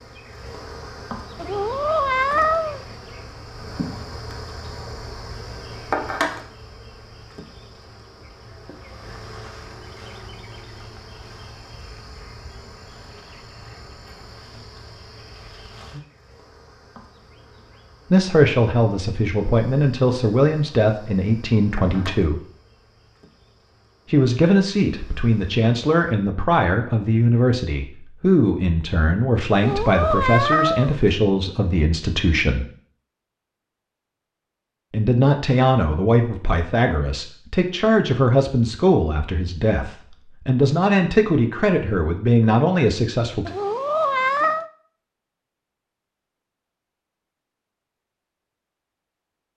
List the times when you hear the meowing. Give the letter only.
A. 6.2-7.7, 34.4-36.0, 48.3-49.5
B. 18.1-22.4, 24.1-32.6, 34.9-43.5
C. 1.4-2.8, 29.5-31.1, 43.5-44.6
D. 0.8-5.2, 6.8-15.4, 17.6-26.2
C.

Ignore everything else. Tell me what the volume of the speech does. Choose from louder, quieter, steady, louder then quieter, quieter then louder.
steady.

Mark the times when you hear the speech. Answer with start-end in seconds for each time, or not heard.
18.1-22.4, 24.1-32.6, 34.9-43.5.